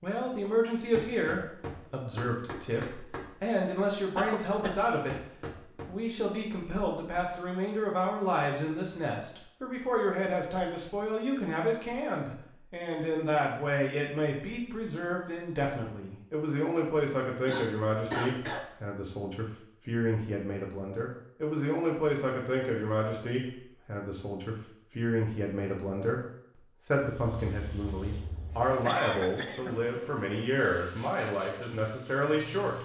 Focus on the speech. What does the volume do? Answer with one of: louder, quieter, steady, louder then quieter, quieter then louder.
steady.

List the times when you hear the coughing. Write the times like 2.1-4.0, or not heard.
4.2-4.8, 17.4-18.8, 28.2-29.8.